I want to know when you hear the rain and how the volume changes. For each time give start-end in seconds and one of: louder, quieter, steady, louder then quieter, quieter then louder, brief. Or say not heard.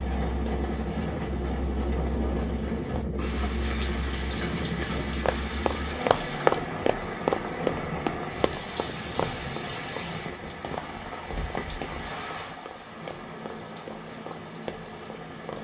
0.0-15.6 quieter.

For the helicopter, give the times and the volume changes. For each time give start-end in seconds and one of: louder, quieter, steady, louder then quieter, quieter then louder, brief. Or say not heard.
0.0-15.6 quieter.